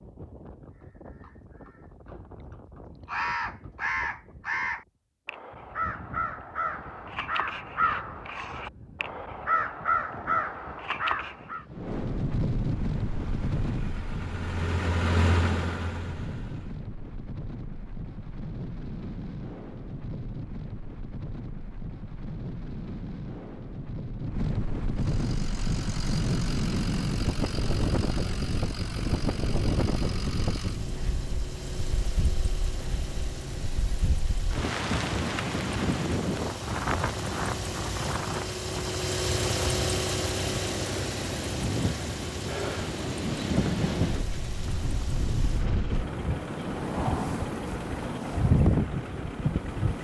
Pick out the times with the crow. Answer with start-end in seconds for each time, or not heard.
3.0-11.7.